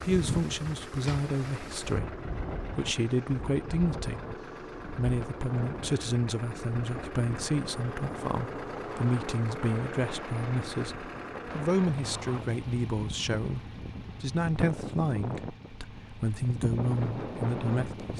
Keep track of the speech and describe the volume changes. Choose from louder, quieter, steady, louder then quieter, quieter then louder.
steady.